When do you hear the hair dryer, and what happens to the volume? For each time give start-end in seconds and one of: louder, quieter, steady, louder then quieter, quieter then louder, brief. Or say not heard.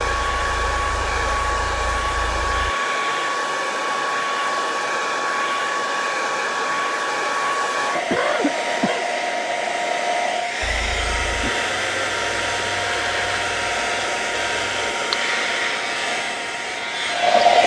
0.0-17.6 steady.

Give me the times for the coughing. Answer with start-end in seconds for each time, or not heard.
8.0-9.1.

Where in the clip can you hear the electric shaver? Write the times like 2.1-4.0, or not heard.
0.0-2.7, 10.6-17.6.